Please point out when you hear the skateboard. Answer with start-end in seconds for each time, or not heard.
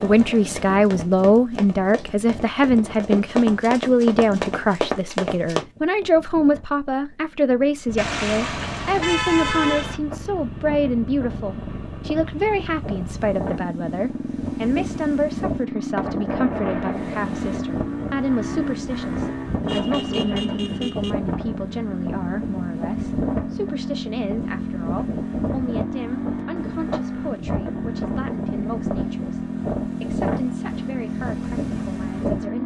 not heard.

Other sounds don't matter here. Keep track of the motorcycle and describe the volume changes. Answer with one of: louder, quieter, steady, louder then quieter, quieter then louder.
louder.